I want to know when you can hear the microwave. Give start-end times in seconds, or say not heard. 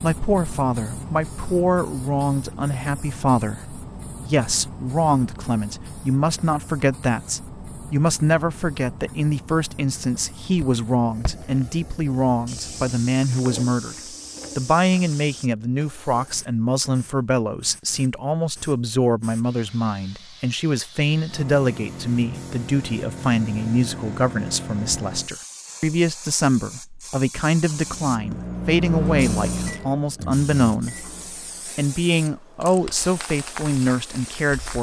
27.6-31.8.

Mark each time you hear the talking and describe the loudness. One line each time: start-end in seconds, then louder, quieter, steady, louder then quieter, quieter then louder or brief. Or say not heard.
0.0-31.1 steady
31.8-34.7 brief.